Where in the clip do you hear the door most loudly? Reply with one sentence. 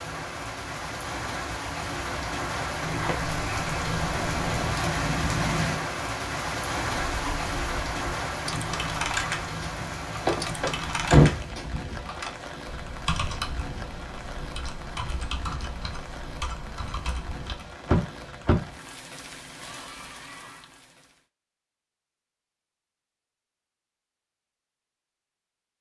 The volume of the door peaks at 11 seconds.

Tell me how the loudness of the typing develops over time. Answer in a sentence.
The volume of the typing goes down.